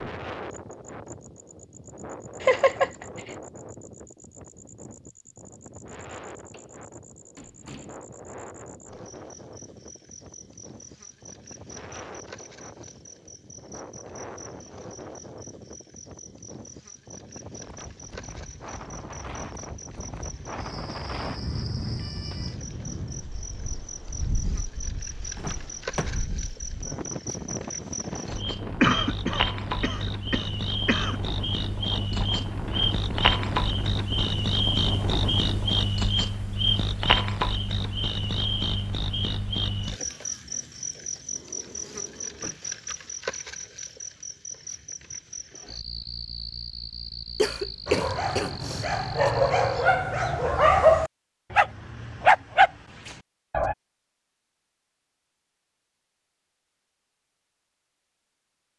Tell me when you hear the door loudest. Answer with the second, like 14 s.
26 s.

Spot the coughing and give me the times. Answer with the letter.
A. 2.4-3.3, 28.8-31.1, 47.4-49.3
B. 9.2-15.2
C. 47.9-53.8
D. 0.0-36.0
A.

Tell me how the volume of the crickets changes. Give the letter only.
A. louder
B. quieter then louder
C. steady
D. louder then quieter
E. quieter
D.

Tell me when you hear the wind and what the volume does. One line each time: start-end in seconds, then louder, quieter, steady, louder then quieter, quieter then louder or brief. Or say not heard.
0.0-36.0 louder.